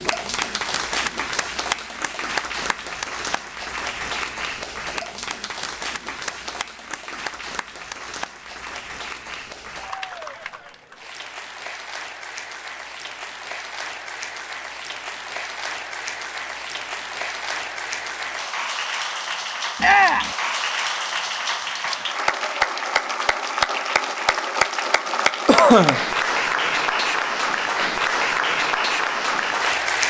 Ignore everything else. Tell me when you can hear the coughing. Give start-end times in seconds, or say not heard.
25.4-26.0.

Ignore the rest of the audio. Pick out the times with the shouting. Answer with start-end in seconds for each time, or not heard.
19.8-20.4.